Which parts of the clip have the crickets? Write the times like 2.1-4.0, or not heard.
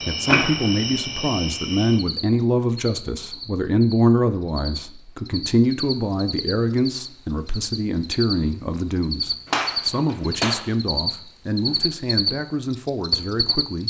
0.0-13.8.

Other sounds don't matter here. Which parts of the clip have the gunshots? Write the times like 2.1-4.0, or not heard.
9.4-10.7.